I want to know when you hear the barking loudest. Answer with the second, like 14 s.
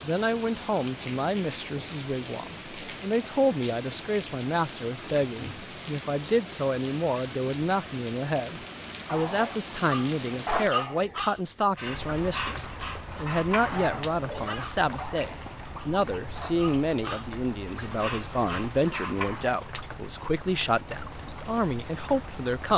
11 s.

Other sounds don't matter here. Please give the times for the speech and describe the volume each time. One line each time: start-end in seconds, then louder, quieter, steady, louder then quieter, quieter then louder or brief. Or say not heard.
0.0-22.7 steady.